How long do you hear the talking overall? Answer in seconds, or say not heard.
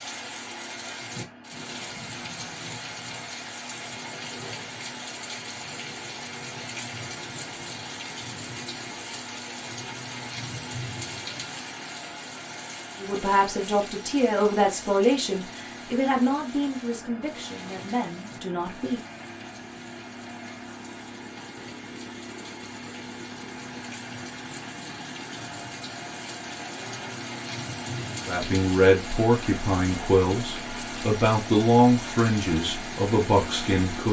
12 s.